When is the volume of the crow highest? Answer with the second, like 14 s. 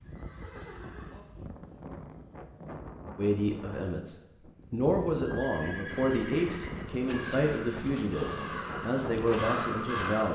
10 s.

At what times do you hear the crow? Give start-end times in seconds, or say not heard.
7.1-10.2.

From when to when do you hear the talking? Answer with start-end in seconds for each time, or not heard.
3.1-10.2.